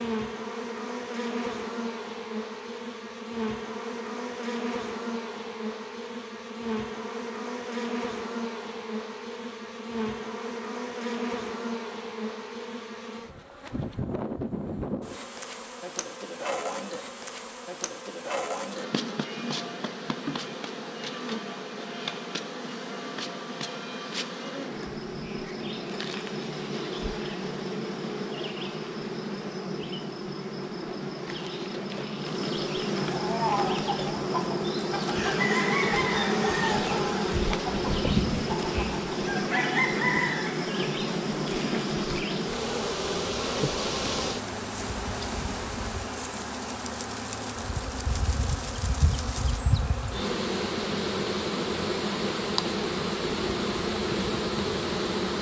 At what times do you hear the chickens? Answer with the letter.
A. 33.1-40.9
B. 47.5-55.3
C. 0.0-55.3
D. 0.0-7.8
A.